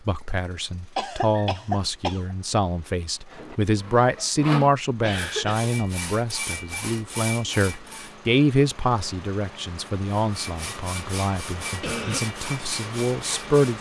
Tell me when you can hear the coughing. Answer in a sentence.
You can hear the coughing from 0.9 to 2.4 s, from 5.0 to 5.7 s and from 11.8 to 12.2 s.